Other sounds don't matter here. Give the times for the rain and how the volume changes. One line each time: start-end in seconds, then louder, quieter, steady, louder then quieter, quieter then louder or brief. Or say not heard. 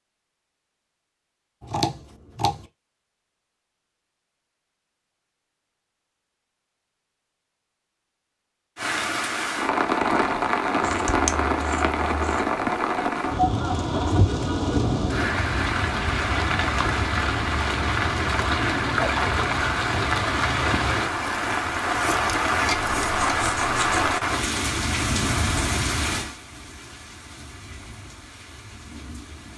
8.8-29.5 quieter.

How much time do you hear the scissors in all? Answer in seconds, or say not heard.
4 s.